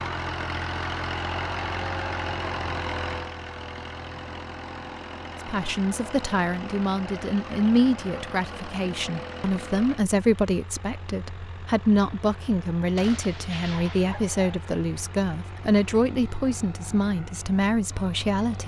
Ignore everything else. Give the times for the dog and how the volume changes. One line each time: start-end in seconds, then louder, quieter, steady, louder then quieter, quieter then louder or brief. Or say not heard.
not heard.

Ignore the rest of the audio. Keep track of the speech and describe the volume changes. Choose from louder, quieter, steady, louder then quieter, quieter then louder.
steady.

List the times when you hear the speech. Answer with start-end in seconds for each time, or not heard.
5.5-18.6.